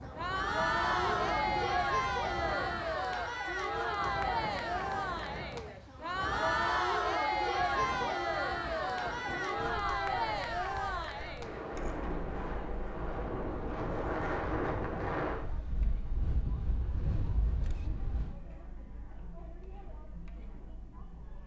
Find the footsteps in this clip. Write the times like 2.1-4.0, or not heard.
not heard.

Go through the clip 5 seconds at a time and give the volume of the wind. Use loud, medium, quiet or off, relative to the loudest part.
medium, medium, loud, loud, off.